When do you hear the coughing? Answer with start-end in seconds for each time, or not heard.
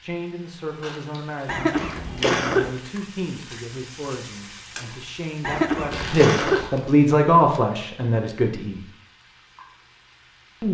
1.4-2.7, 5.4-6.7.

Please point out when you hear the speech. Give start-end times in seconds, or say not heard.
0.0-8.8.